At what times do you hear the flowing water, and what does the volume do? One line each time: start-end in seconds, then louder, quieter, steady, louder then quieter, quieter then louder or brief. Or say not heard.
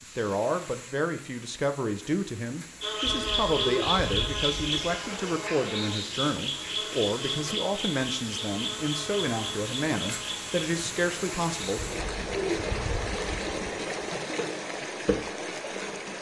0.0-16.1 louder.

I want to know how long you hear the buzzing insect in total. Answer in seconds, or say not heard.
13 s.